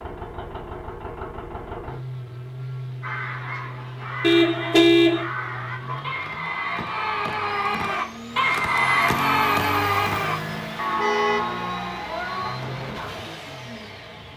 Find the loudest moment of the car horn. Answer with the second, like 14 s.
5 s.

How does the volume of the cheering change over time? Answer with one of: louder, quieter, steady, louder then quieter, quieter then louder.
louder then quieter.